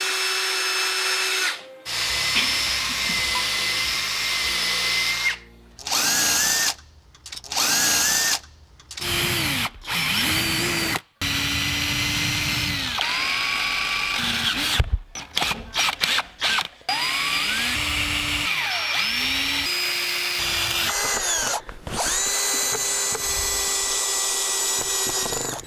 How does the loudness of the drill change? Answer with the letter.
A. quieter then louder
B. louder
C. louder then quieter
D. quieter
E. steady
E.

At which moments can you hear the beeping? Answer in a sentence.
The beeping can be heard from 2.3 to 3.4 s.